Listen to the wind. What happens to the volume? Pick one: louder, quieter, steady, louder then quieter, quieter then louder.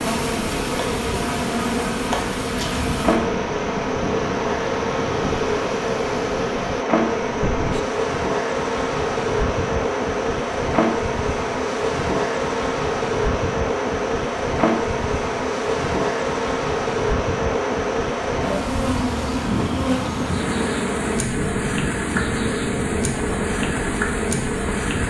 steady.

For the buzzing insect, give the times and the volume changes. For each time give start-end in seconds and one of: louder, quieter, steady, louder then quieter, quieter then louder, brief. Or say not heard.
0.0-25.0 steady.